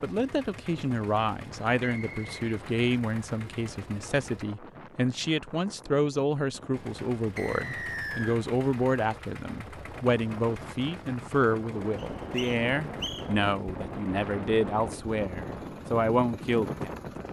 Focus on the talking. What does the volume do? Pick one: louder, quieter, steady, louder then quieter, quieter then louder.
steady.